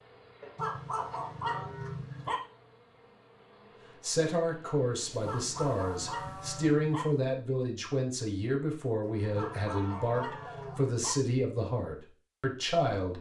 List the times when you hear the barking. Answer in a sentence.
The barking can be heard from 0.6 to 2.4 s, from 5.2 to 7.0 s and from 9.3 to 11.2 s.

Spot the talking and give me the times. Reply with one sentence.
The talking can be heard from 4.0 to 13.1 s.